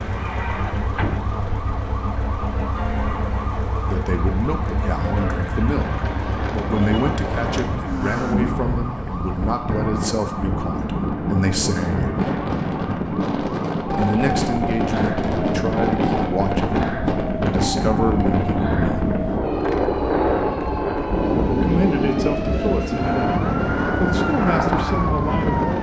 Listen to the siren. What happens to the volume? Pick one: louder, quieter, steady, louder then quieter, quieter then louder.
steady.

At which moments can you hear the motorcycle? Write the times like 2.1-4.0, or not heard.
0.0-8.6.